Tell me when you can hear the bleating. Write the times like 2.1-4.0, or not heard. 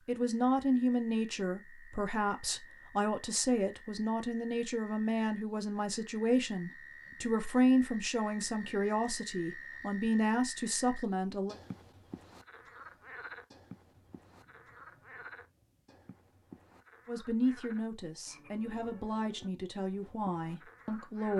not heard.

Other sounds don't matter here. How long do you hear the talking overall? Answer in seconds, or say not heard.
16 s.